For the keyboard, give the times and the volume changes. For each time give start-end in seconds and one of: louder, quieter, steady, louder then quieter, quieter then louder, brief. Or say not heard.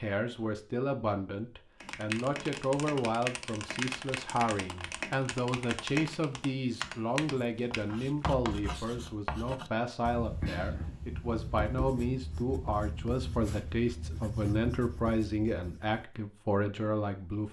1.8-8.3 steady.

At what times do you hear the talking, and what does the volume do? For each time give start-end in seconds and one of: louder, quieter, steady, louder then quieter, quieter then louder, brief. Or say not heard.
0.0-17.4 steady.